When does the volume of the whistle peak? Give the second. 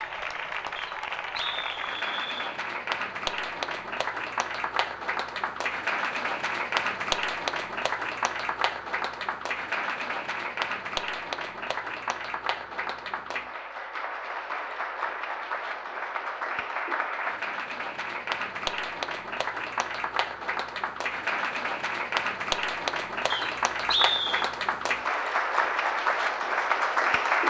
24 s.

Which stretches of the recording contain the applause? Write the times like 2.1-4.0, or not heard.
0.0-27.4.